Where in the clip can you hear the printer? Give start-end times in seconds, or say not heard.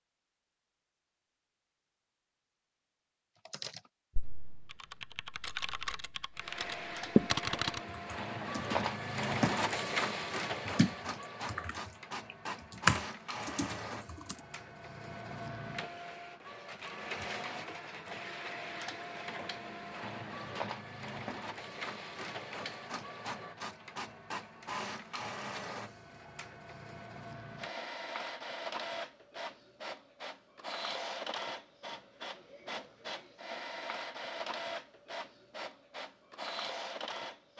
6.3-37.5.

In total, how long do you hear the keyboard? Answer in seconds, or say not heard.
10 s.